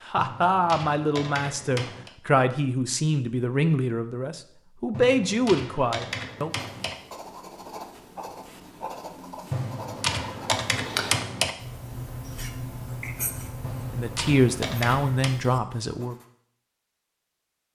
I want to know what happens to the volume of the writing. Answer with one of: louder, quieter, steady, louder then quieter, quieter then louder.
louder then quieter.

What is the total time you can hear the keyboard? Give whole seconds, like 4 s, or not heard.
8 s.